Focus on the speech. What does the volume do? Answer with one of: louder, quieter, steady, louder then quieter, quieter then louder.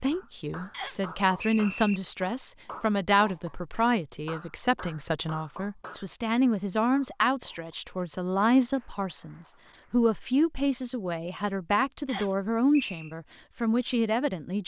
steady.